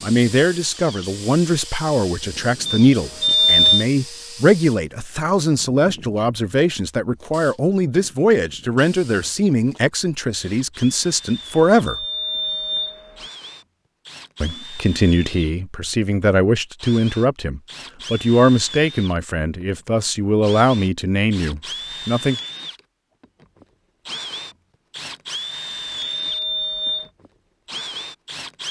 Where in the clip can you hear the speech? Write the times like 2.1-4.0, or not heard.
0.0-12.1, 14.4-22.4.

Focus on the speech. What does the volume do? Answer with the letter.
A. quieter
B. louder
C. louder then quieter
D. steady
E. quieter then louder
D.